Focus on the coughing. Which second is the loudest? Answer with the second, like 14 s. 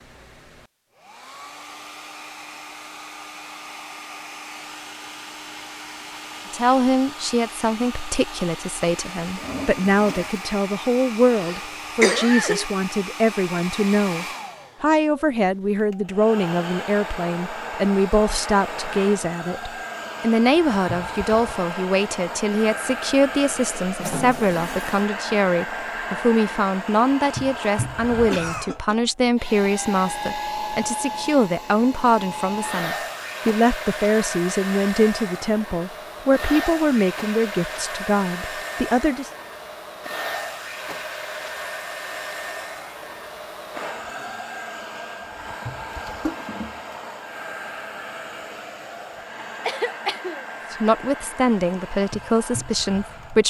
12 s.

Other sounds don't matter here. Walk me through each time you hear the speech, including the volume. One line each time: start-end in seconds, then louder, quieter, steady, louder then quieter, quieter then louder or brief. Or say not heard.
6.5-39.3 steady
50.7-53.4 brief.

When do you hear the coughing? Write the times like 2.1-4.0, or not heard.
11.3-12.7, 28.3-29.0, 49.6-50.5.